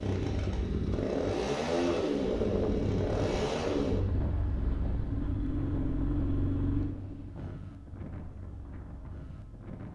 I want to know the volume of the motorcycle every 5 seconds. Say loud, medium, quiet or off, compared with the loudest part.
loud, medium.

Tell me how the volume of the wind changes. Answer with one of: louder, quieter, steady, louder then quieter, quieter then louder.
quieter.